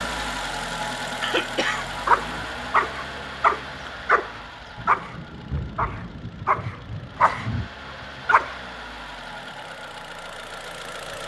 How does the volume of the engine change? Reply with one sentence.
The loudness of the engine goes down, then up.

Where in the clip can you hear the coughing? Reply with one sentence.
The coughing can be heard from 1.2 to 2.5 s.